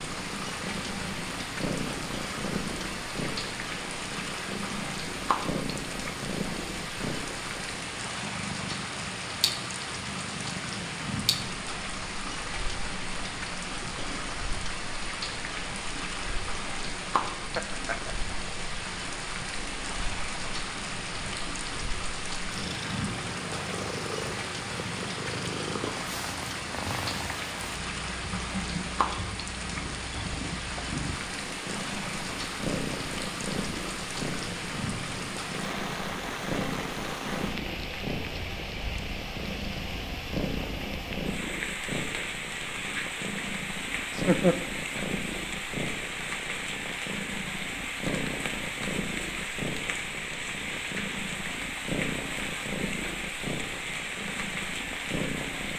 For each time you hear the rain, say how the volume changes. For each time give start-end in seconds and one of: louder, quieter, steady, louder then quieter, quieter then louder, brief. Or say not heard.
0.0-55.7 steady.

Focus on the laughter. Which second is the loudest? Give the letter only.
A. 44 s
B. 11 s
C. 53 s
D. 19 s
A.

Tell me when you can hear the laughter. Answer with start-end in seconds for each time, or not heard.
17.6-18.1, 44.0-44.5.